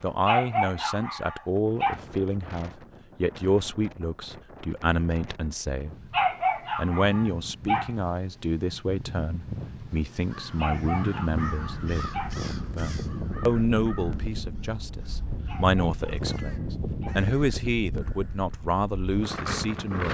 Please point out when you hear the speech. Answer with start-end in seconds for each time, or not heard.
0.0-6.0, 6.8-20.0.